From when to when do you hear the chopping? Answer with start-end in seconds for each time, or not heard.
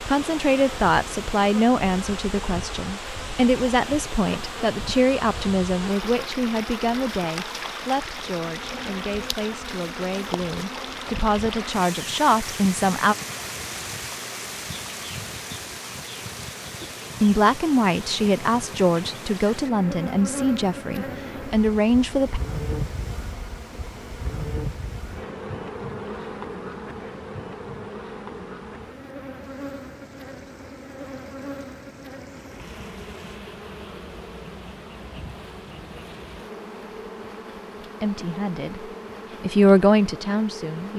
not heard.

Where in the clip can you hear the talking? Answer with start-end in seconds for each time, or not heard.
0.1-13.2, 17.2-22.4, 38.0-40.9.